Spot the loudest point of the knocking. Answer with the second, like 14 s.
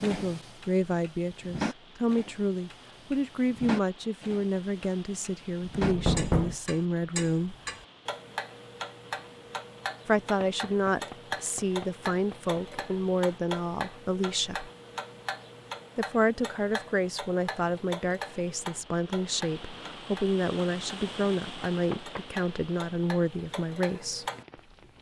6 s.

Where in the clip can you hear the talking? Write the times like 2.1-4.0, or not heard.
0.0-7.5, 10.1-14.7, 15.9-24.2.